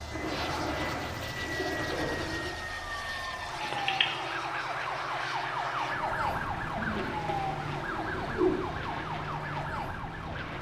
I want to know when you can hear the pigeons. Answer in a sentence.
The pigeons can be heard from 0.1 to 2.5 s and from 6.8 to 8.8 s.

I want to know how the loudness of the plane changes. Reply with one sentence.
The loudness of the plane stays about the same.